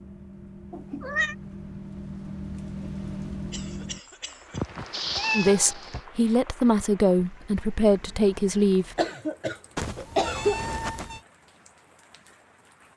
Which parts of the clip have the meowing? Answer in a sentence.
You can hear the meowing from 0.7 to 1.4 s, from 4.5 to 6.0 s and from 9.8 to 11.2 s.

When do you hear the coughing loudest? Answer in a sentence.
The volume of the coughing peaks at 10 seconds.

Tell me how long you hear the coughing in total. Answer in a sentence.
The coughing can be heard for 3 seconds in total.